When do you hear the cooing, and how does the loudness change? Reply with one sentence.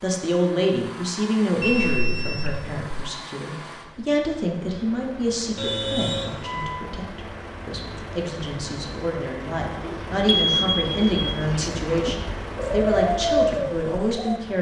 You can hear the cooing from 9.8 to 14.4 s, getting louder.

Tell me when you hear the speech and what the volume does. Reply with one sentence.
You can hear the speech from 0.0 to 14.5 s, getting quieter then louder.